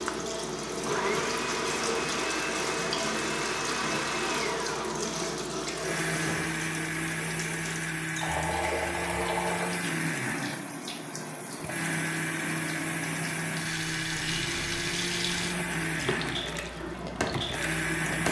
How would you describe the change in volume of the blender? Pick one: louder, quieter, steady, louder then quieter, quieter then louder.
steady.